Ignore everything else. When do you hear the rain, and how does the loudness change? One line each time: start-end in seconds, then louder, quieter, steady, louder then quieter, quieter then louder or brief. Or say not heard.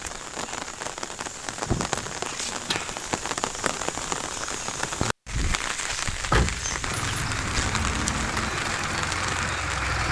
0.0-10.0 steady.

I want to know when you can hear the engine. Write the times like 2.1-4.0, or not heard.
6.8-10.0.